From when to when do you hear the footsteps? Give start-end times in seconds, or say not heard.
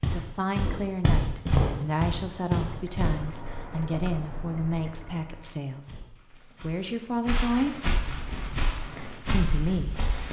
0.0-3.2, 5.8-10.2.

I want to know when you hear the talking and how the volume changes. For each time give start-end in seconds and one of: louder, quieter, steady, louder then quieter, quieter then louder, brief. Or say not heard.
0.0-7.8 steady
9.3-10.2 brief.